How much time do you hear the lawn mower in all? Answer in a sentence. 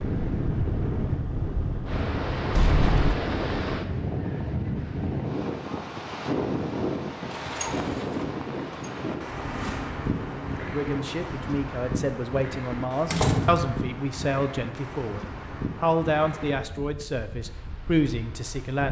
The lawn mower can be heard for 2 seconds in total.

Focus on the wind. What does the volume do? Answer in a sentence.
The volume of the wind goes down.